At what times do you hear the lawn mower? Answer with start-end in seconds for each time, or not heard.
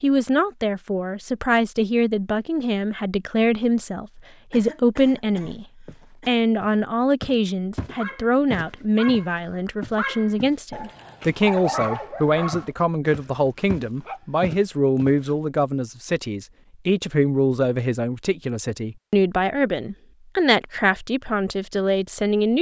not heard.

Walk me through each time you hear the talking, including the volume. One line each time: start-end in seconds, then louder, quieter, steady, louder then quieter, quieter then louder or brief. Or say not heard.
0.0-22.5 steady.